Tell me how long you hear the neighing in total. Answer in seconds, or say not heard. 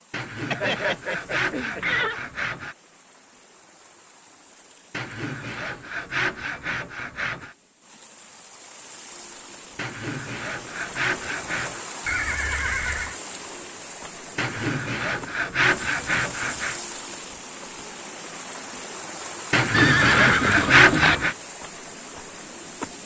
4 s.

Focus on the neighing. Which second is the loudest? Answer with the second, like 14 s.
20 s.